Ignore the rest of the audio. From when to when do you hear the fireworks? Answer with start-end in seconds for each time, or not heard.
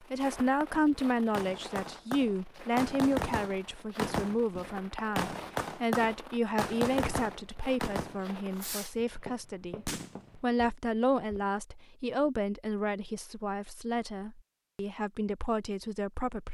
0.7-8.9, 9.8-10.2.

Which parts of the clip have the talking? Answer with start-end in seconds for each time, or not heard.
0.1-16.5.